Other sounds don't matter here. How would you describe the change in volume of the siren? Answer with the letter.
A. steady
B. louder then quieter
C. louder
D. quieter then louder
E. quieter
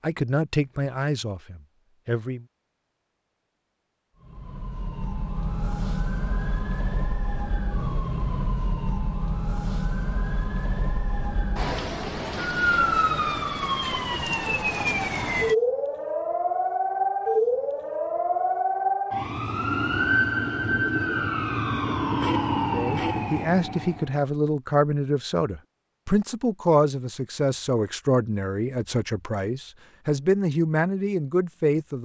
C.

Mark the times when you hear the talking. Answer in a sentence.
You can hear the talking from 0.0 to 2.5 s and from 22.7 to 32.0 s.